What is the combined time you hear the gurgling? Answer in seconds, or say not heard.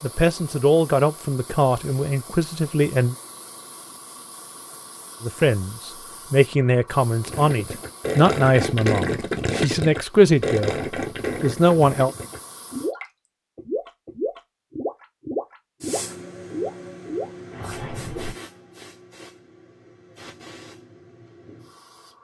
11 s.